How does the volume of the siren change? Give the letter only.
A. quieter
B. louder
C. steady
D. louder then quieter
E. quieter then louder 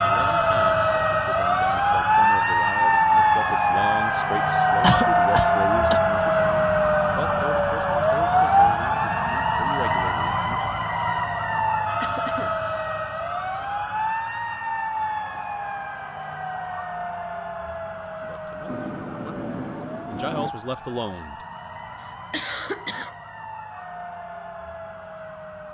A.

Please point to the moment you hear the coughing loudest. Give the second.
5 s.